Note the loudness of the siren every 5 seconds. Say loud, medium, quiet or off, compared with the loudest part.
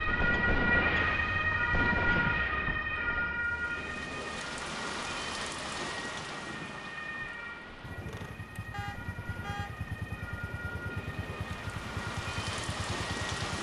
loud, quiet, quiet.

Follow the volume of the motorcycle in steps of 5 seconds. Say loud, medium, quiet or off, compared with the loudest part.
off, loud, loud.